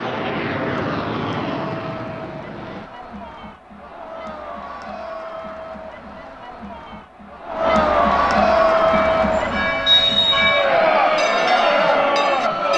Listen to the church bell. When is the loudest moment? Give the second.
10 s.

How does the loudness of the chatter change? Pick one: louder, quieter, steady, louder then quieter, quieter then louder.
louder.